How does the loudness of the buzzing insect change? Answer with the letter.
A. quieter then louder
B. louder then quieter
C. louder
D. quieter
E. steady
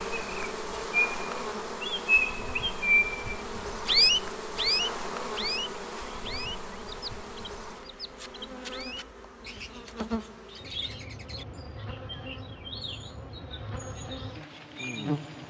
D.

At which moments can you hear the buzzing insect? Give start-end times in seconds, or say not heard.
0.0-15.4.